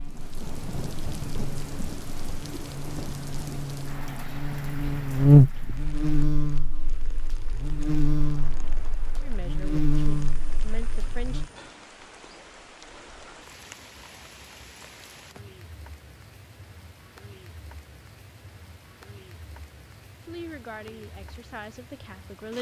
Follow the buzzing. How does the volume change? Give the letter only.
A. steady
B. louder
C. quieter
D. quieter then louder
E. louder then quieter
E.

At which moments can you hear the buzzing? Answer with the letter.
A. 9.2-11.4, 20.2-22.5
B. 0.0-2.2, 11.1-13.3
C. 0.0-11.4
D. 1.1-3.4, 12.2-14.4
C.